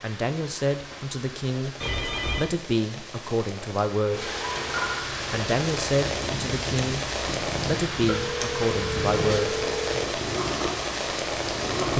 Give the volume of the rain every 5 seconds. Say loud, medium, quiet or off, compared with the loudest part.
medium, loud, loud.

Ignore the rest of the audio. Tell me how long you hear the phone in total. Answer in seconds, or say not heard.
4 s.